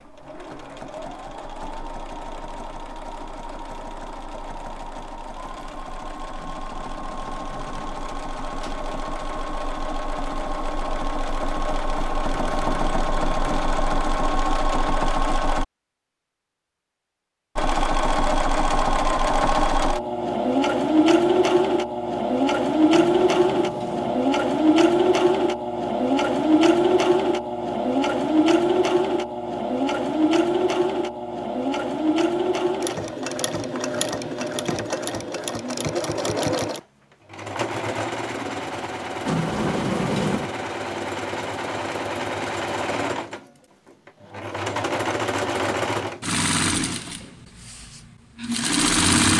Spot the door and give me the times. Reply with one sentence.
You can hear the door from 6.3 to 8.9 s, from 22.9 to 24.2 s and from 39.2 to 40.5 s.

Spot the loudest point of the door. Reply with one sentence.
The volume of the door peaks at 40 seconds.